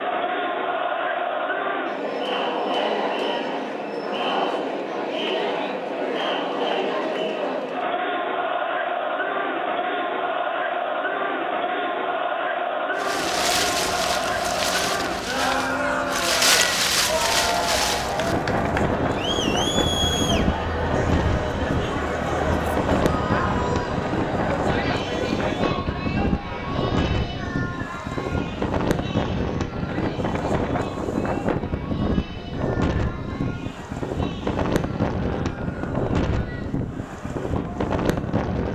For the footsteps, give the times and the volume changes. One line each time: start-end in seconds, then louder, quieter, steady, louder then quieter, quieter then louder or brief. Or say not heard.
not heard.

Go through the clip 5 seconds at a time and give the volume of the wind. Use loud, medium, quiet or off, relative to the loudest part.
off, off, loud, loud, loud, loud, loud, loud.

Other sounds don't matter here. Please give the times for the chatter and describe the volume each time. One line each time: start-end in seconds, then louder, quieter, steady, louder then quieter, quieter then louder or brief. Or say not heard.
0.0-38.5 quieter.